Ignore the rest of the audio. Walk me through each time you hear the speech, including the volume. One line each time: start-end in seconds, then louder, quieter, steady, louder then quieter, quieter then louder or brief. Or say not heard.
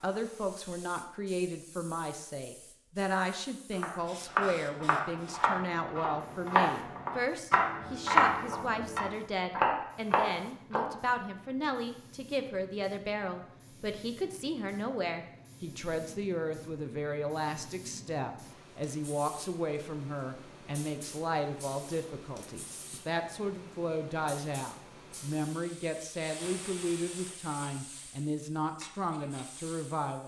0.0-30.2 steady.